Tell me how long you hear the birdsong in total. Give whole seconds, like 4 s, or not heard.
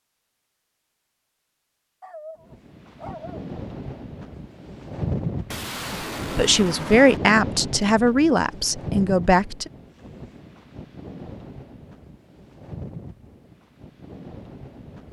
not heard.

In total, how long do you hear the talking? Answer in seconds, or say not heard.
4 s.